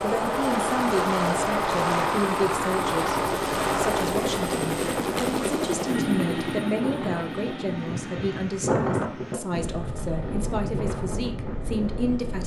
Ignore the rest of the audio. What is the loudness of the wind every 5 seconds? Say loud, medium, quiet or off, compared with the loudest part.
off, loud, loud.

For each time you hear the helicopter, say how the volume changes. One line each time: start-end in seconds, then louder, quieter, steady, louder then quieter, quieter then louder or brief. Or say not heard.
0.0-12.4 quieter.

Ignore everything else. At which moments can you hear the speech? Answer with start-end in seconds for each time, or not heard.
0.0-12.4.